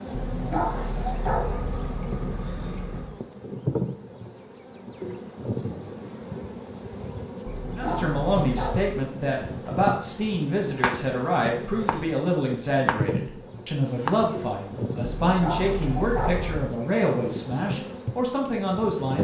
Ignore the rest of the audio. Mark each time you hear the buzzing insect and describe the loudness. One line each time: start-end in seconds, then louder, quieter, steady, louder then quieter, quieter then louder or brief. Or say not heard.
0.0-19.2 steady.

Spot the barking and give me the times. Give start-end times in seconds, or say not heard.
0.1-3.1, 7.5-9.1, 15.1-16.7.